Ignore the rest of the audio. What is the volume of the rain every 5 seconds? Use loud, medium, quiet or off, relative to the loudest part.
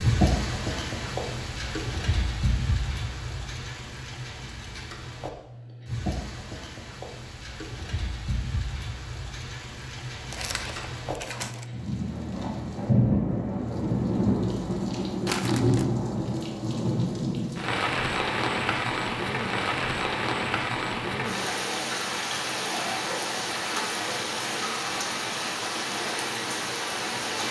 loud, medium, loud, loud, loud, loud.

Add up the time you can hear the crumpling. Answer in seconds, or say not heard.
2 s.